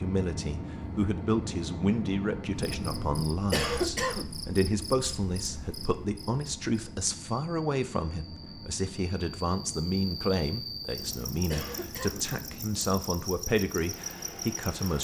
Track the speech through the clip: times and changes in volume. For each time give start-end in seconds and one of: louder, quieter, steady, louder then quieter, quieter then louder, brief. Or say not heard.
0.0-14.9 steady.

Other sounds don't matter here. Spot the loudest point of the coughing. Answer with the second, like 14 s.
4 s.